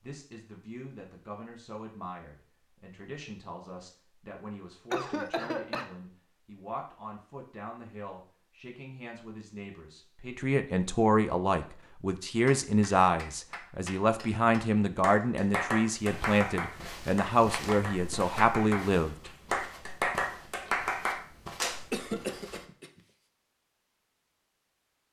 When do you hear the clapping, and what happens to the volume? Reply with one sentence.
The clapping can be heard from 12.4 to 21.8 s, getting louder.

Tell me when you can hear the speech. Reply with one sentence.
You can hear the speech from 0.0 to 19.3 s.